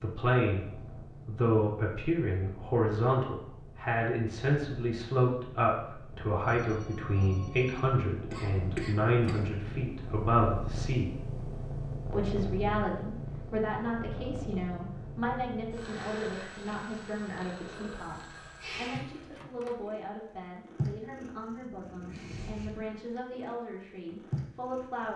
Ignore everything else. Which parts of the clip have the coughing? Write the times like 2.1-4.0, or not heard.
8.3-9.5.